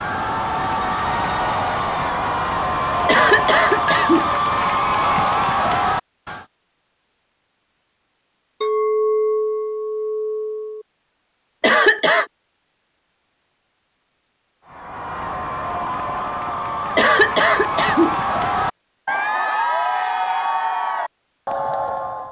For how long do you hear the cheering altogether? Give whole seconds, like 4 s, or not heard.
14 s.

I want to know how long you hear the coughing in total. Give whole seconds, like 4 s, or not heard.
3 s.